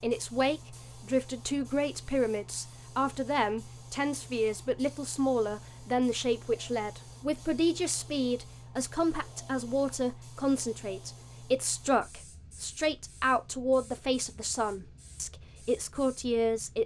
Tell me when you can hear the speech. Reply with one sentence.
The speech can be heard from 0.0 to 16.8 s.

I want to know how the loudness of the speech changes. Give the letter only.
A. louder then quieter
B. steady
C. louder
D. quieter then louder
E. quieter
B.